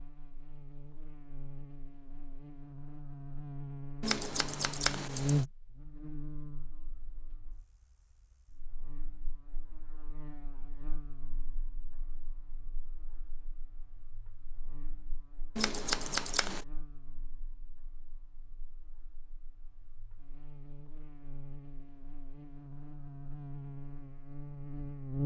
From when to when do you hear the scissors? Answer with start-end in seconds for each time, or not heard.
4.0-5.5, 15.6-16.6.